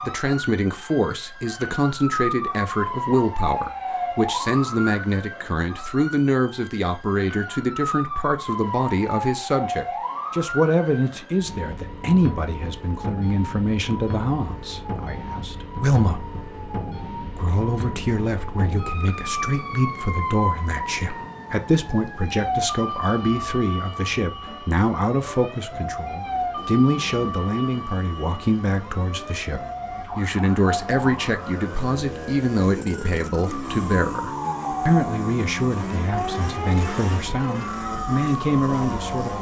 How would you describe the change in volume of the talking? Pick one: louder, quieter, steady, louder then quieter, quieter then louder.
steady.